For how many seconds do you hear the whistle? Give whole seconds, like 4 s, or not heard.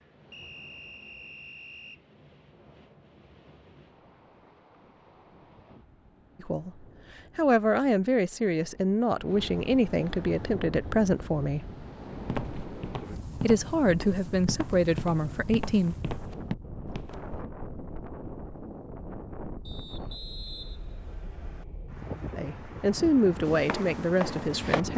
4 s.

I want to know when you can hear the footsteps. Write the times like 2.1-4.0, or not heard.
12.2-17.4, 23.4-24.9.